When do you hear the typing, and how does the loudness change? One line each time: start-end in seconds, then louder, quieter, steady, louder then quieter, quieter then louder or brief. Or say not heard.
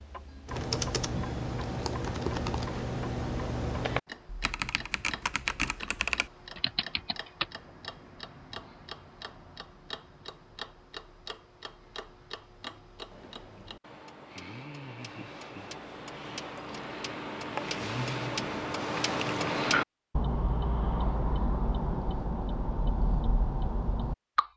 0.5-7.5 steady.